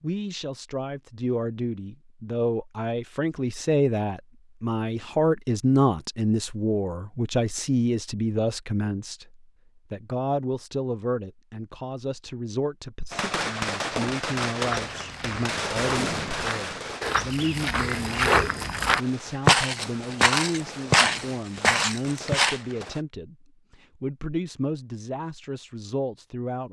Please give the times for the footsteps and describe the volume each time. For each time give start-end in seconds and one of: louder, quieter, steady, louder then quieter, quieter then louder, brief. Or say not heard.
14.5-22.6 louder.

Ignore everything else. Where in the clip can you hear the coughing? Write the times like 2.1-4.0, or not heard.
not heard.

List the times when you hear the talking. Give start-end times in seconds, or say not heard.
0.0-26.6.